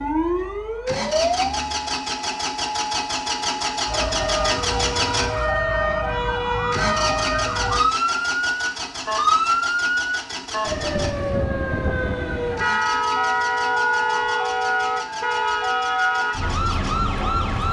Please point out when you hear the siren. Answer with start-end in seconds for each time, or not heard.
0.0-17.6.